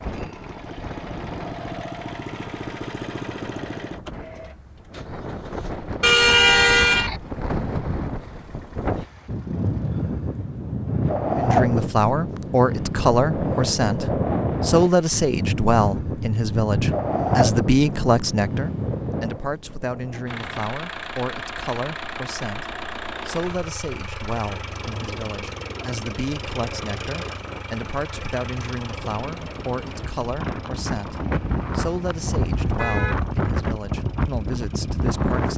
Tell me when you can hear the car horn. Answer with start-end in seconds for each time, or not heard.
6.0-7.2, 31.1-33.1.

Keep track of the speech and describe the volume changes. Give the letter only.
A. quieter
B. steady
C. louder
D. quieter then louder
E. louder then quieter
A.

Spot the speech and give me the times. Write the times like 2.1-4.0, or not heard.
11.3-35.5.